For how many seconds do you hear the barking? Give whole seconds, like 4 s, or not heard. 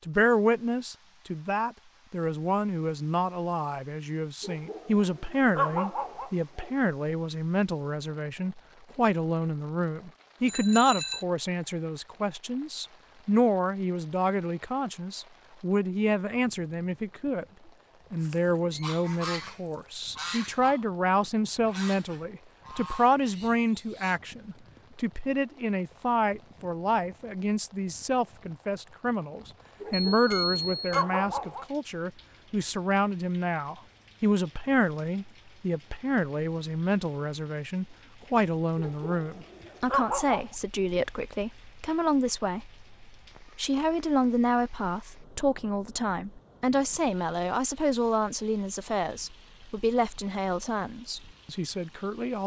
6 s.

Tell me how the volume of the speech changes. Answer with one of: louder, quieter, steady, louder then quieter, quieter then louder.
steady.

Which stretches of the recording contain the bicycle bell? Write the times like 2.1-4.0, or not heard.
10.4-11.2, 30.1-31.1.